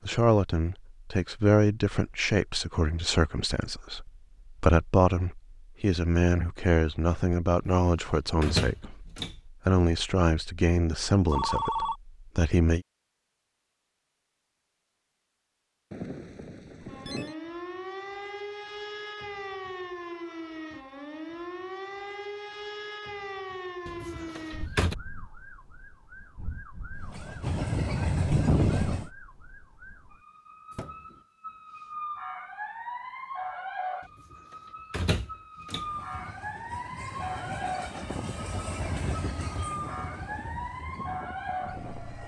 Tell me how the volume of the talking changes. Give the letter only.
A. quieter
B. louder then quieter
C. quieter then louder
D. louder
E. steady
E.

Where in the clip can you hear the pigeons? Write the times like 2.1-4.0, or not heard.
not heard.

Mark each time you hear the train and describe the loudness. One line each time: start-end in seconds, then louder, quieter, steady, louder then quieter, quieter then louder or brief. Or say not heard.
26.9-29.1 brief
35.7-42.2 louder then quieter.